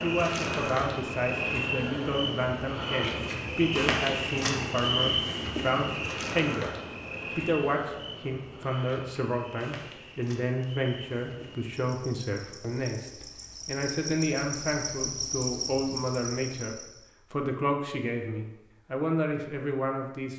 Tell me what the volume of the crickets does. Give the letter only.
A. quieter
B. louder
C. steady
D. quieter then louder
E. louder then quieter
D.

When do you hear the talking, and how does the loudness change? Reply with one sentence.
You can hear the talking from 0.0 to 6.8 s, at a steady volume; and from 7.3 to 20.3 s, at a steady volume.